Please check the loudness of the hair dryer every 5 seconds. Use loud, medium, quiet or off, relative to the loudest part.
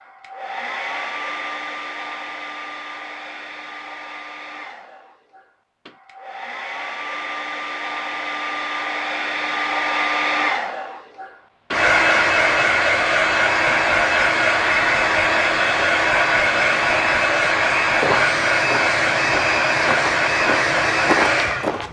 quiet, medium, loud, loud, loud.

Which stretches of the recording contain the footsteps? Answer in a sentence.
The footsteps can be heard from 17.9 to 21.8 s.